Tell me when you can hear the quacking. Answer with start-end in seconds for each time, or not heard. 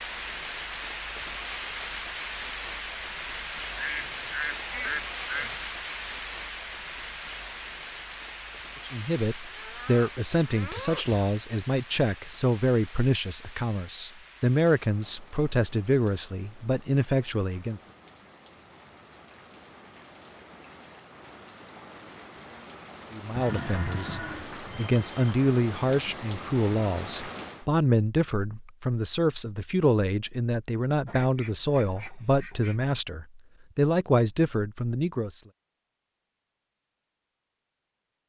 3.8-5.6, 31.1-32.8.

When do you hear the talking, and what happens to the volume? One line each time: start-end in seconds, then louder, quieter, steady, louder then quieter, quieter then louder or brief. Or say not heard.
8.8-17.8 steady
23.1-35.4 steady.